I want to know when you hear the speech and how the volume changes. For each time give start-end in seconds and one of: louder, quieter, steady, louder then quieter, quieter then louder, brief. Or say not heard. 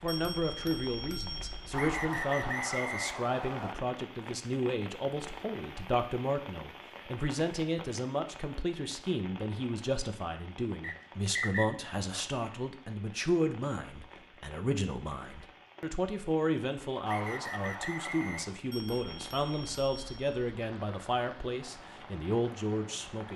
0.0-23.3 steady.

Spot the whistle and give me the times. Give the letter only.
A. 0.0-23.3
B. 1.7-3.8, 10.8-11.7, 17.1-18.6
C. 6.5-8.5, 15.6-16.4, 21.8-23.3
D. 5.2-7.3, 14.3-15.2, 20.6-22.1
B.